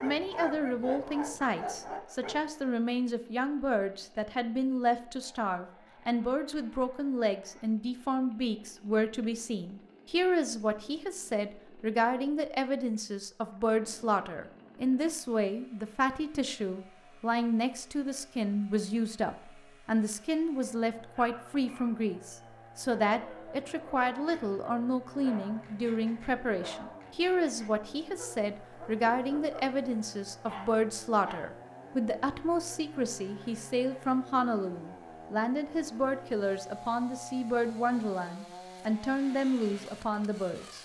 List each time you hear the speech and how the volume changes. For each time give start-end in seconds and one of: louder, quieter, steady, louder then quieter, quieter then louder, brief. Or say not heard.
0.0-40.8 steady.